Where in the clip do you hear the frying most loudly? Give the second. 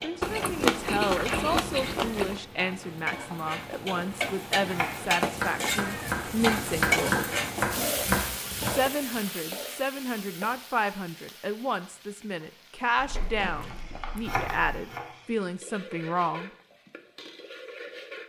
7 s.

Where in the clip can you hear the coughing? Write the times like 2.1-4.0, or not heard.
not heard.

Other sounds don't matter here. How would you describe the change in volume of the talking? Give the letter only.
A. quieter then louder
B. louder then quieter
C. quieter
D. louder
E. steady
E.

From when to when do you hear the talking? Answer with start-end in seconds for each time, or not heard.
0.0-7.2, 8.7-16.5.